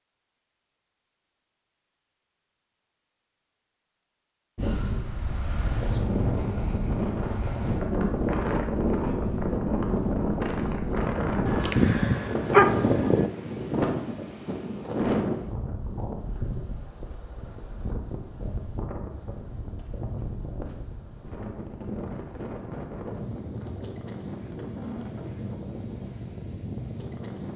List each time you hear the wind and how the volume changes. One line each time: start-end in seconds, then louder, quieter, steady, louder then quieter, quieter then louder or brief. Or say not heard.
4.5-27.5 quieter.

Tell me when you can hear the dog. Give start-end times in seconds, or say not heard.
11.4-13.3.